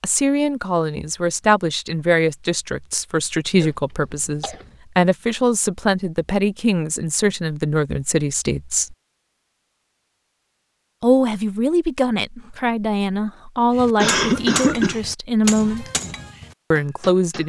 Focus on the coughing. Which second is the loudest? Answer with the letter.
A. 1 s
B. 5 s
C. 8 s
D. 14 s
D.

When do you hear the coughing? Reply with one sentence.
You can hear the coughing from 3.6 to 4.8 s and from 14.0 to 15.0 s.